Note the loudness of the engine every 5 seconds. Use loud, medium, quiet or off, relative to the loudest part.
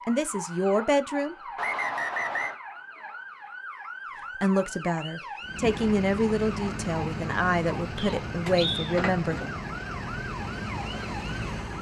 off, loud, loud.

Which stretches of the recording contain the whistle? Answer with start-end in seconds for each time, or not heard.
1.6-2.5, 8.0-8.9.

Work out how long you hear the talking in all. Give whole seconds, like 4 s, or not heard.
6 s.